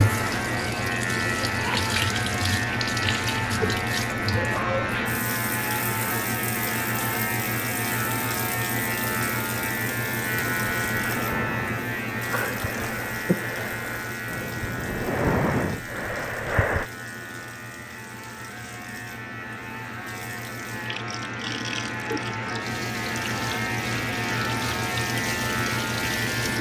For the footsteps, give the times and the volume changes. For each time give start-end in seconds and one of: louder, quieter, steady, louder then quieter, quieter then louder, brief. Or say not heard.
not heard.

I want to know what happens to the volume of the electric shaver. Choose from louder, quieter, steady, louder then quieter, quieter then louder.
quieter then louder.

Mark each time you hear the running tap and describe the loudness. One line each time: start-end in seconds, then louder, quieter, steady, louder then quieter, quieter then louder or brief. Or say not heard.
0.0-26.5 quieter then louder.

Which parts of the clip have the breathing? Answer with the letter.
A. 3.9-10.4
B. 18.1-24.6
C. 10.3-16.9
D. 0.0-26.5
C.